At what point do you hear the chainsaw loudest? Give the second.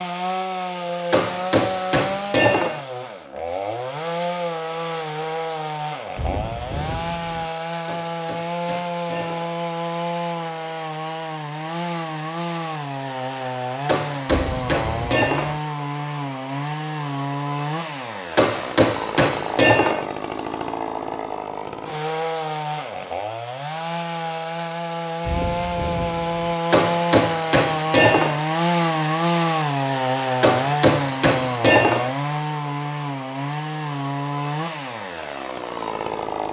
29 s.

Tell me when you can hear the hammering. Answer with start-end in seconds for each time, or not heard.
1.1-2.8, 7.8-9.6, 13.8-15.6, 18.4-20.1, 26.7-28.4, 30.4-32.1.